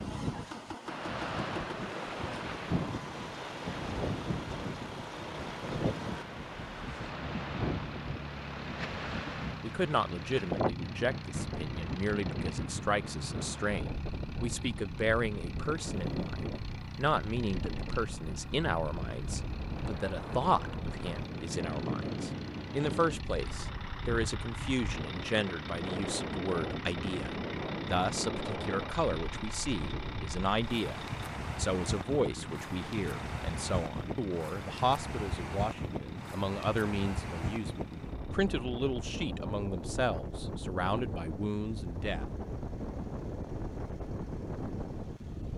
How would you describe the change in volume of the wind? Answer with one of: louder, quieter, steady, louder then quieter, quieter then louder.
steady.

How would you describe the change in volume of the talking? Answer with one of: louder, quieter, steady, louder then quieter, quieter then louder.
steady.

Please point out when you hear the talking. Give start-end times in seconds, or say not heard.
9.6-42.2.